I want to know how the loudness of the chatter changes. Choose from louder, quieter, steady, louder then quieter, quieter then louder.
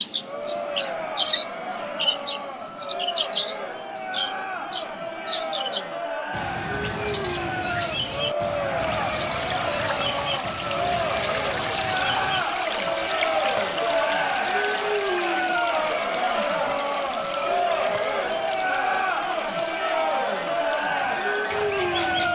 louder.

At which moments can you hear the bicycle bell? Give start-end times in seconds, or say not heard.
not heard.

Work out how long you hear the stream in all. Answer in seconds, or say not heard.
14 s.